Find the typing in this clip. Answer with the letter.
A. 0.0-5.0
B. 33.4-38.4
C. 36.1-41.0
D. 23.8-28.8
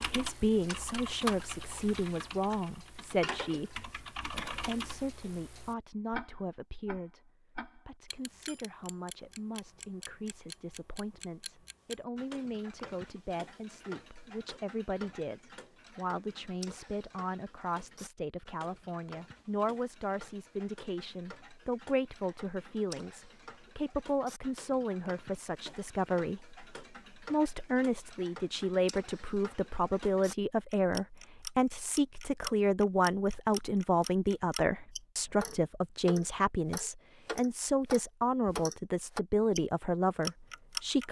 A.